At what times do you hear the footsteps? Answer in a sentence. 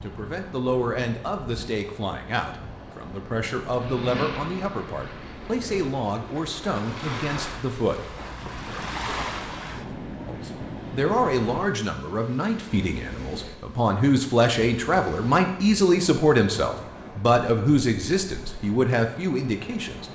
You can't hear the footsteps here.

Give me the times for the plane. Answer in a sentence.
You can hear the plane from 3.6 to 5.7 s.